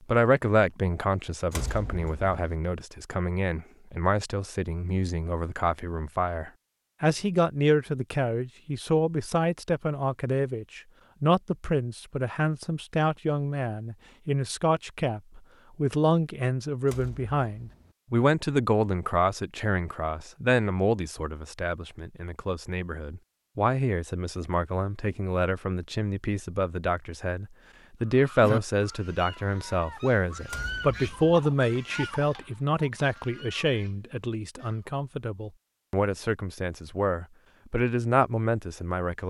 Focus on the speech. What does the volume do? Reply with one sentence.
The loudness of the speech stays about the same.